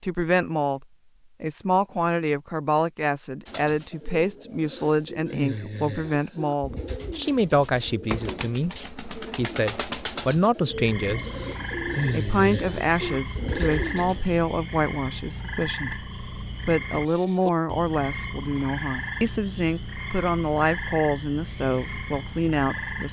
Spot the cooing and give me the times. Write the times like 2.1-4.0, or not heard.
3.5-14.2.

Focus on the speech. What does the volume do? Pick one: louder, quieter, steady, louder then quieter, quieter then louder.
steady.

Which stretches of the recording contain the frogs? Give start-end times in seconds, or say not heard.
10.7-23.0.